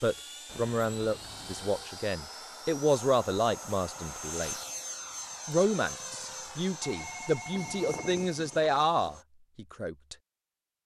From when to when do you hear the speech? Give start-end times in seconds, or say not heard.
0.0-4.5, 5.5-10.2.